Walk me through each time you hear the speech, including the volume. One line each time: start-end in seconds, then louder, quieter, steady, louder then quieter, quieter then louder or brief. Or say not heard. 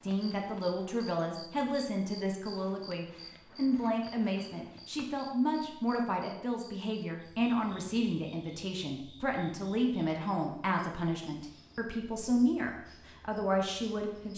0.0-14.3 steady.